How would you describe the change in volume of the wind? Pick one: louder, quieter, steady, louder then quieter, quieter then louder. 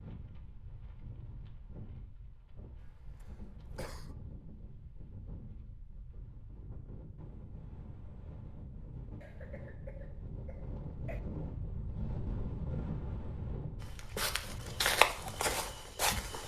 louder.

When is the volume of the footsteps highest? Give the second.
15 s.